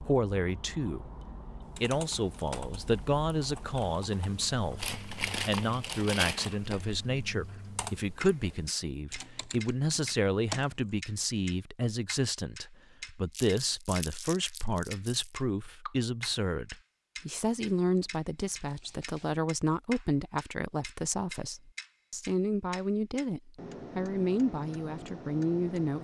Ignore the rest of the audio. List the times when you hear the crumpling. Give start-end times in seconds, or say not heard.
4.8-6.7, 13.3-15.3, 17.9-19.4.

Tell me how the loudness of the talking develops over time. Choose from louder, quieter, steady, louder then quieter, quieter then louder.
steady.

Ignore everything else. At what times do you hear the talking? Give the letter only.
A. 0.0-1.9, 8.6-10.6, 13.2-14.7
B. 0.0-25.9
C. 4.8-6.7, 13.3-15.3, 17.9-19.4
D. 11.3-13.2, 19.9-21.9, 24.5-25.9
B.